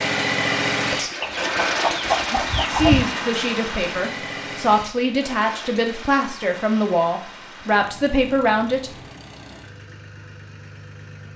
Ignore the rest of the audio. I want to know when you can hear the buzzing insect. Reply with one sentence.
You can't hear the buzzing insect here.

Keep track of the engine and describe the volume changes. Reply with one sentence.
The loudness of the engine goes down.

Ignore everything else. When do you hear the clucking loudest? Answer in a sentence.
The loudest moment of the clucking is at 3 seconds.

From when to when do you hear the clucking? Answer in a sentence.
The clucking can be heard from 1.2 to 3.0 s.